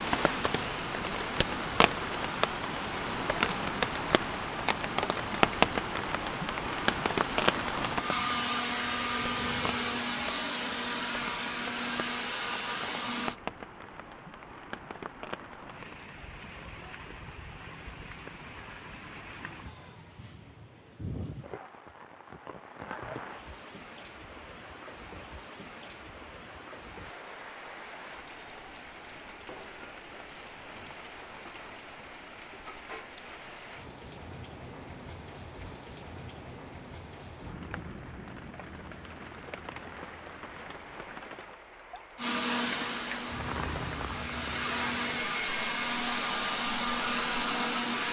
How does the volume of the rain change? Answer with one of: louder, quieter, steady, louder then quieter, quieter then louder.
quieter.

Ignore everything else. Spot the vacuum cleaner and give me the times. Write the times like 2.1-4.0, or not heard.
0.0-13.3, 42.1-48.0.